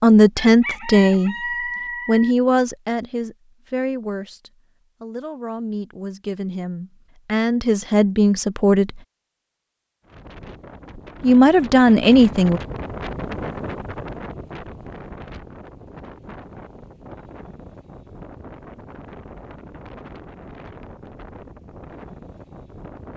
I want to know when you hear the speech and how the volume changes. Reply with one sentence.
You can hear the speech briefly from 0.0 to 1.4 s; from 2.0 to 9.0 s, getting quieter then louder; and briefly from 11.2 to 12.6 s.